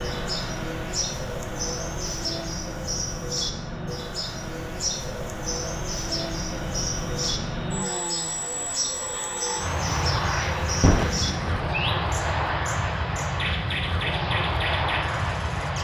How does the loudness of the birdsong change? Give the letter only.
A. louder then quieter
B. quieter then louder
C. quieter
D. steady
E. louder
D.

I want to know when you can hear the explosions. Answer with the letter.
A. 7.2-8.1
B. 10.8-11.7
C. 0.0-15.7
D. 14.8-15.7
B.